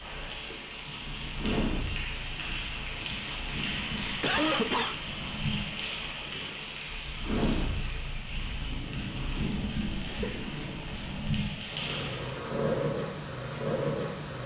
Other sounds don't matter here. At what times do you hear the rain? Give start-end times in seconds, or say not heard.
0.0-12.4.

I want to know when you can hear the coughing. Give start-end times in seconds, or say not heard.
4.2-5.0, 10.1-10.5.